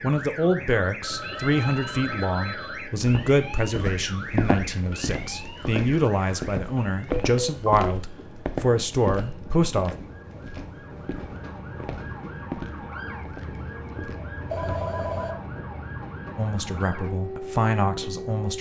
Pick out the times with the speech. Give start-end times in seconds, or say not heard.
0.0-9.9, 16.4-18.5.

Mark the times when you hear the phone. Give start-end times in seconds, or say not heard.
1.0-2.9, 7.2-8.0, 14.5-15.3.